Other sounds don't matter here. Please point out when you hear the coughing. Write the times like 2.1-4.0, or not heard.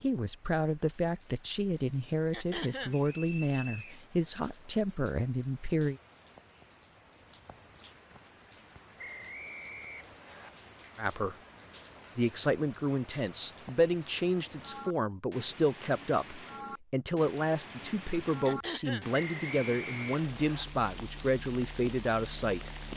2.3-3.0, 18.4-19.1.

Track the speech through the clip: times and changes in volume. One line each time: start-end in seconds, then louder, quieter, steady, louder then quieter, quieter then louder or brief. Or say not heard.
0.0-6.0 steady
10.9-11.3 brief
12.2-22.7 steady.